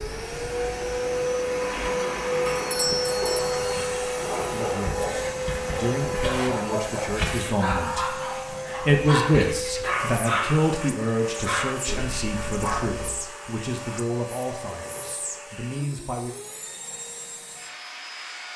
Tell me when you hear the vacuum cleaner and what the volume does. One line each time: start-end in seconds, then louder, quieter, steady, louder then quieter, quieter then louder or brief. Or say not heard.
0.0-18.5 quieter.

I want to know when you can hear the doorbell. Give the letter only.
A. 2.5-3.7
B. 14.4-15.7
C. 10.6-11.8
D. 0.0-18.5
A.